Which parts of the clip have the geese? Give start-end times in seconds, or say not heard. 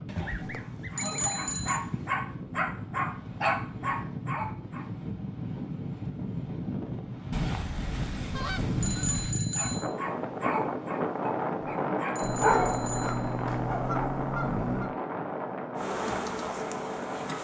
0.1-2.1, 7.3-9.3, 12.2-14.9.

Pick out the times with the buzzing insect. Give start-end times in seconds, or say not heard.
15.8-17.4.